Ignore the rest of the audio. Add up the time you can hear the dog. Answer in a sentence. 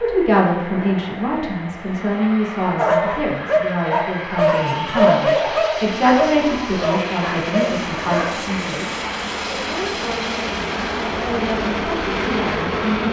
The dog can be heard for 6 seconds in total.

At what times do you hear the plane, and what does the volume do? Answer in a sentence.
The plane can be heard from 0.0 to 13.0 s, getting louder.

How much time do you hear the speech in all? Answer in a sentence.
You can hear the speech for 13 seconds altogether.